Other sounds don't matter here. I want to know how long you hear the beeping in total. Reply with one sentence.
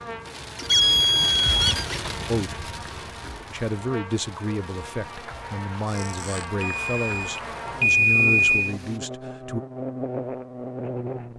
The beeping can be heard for 3 seconds in total.